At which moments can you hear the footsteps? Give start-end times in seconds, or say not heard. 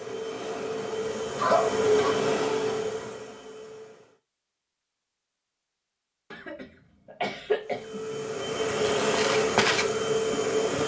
9.1-10.8.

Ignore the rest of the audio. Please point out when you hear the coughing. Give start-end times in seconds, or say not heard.
1.4-2.2, 6.3-8.1.